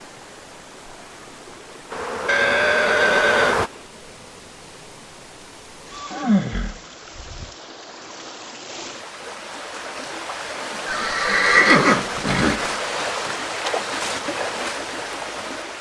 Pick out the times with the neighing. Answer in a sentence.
You can hear the neighing from 2.2 to 3.5 s, from 5.9 to 7.5 s and from 10.8 to 12.6 s.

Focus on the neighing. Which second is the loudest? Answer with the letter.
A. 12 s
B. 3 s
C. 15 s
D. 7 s
A.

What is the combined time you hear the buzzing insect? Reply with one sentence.
The buzzing insect can be heard for 2 seconds in total.